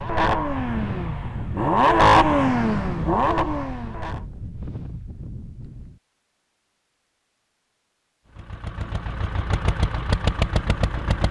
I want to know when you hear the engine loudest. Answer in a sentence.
The loudest moment of the engine is at 2 seconds.